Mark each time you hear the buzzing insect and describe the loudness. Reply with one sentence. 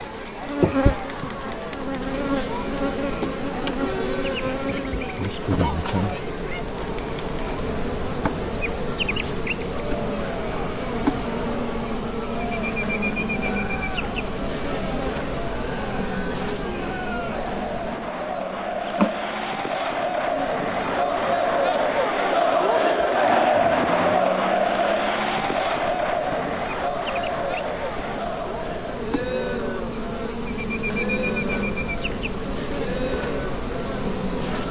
You can hear the buzzing insect from 0.0 to 34.6 s, getting quieter then louder.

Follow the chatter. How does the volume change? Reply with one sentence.
The loudness of the chatter goes up, then down.